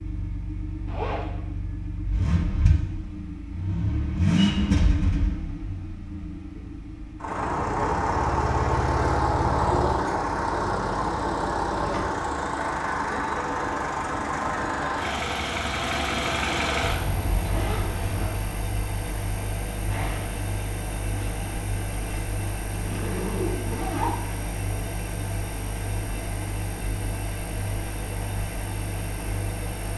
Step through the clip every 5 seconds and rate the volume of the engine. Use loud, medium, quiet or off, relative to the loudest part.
loud, loud, loud, loud, medium, medium.